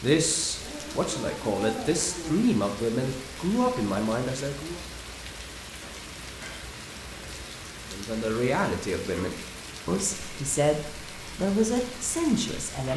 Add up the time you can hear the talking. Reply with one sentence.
You can hear the talking for 10 seconds altogether.